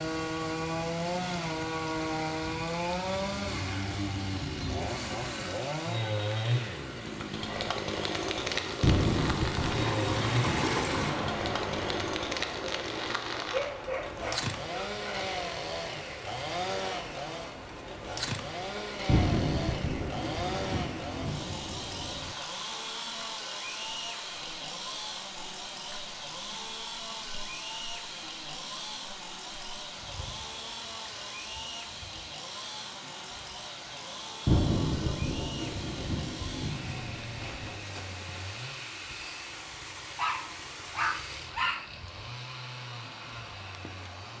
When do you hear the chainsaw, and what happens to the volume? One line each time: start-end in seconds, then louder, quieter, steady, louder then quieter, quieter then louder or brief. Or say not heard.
0.0-44.3 quieter.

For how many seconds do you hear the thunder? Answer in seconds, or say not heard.
10 s.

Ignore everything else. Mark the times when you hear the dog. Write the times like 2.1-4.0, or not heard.
13.4-15.3, 40.1-41.9.